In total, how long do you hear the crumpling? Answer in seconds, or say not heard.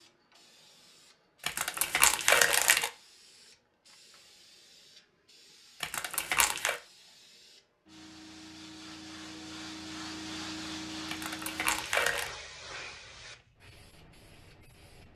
4 s.